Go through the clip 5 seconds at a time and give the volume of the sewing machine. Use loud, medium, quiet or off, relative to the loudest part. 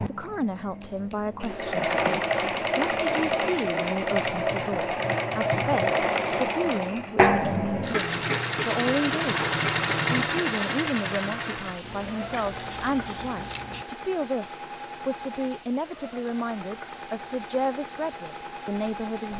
loud, loud, medium, quiet.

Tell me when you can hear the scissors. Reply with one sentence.
You can hear the scissors from 0.8 to 2.3 s and from 11.8 to 13.8 s.